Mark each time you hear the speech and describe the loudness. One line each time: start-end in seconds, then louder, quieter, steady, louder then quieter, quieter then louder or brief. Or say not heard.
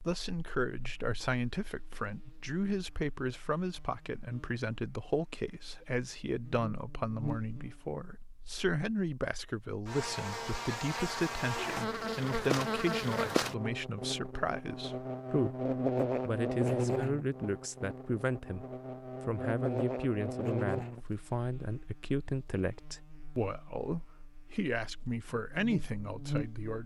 0.1-18.6 steady
19.2-26.8 steady.